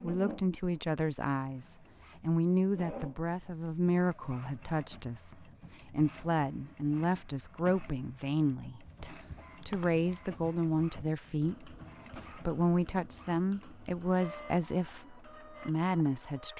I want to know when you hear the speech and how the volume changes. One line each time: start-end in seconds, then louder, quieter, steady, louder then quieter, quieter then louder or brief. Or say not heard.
0.0-16.5 steady.